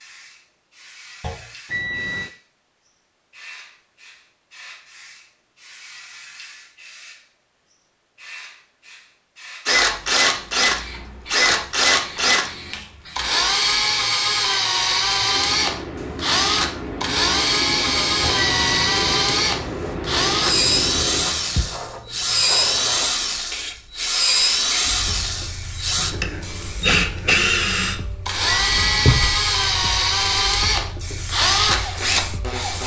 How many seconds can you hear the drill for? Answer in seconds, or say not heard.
23 s.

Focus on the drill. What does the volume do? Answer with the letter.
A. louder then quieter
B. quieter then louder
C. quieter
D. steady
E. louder
D.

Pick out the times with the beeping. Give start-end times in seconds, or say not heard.
1.7-2.4, 18.4-18.9, 28.4-29.4.